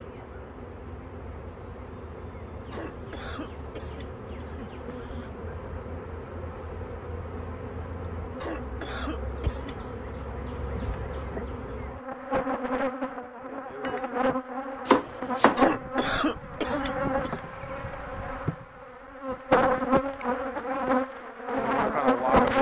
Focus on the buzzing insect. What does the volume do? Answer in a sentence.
The volume of the buzzing insect goes up.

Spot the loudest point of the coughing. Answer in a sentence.
The loudest moment of the coughing is at 16 seconds.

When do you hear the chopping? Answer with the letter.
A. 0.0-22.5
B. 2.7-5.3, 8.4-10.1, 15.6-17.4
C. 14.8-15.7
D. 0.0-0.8
C.